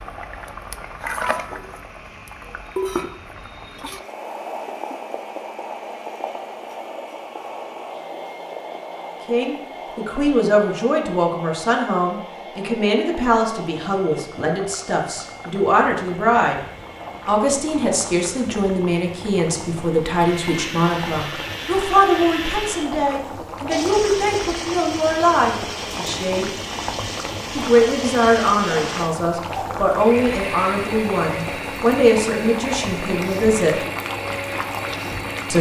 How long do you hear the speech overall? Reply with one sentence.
You can hear the speech for 23 seconds altogether.